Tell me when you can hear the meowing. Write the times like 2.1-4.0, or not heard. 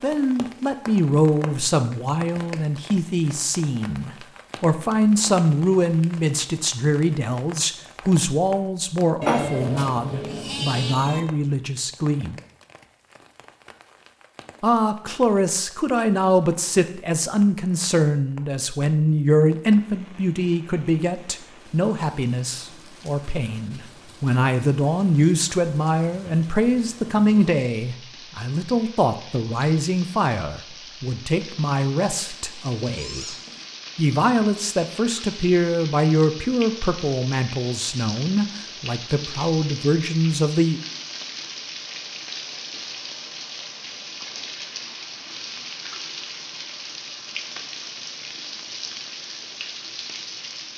9.2-11.2, 32.2-33.6.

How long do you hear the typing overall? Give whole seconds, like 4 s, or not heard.
not heard.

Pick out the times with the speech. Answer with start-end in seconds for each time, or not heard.
0.0-12.3, 14.6-33.2, 34.0-40.8.